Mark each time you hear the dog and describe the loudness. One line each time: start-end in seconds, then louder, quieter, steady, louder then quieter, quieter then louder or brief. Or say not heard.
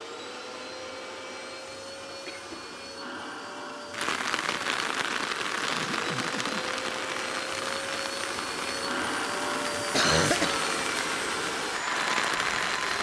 not heard.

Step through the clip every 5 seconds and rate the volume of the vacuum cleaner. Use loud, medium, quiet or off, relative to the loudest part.
medium, loud, loud.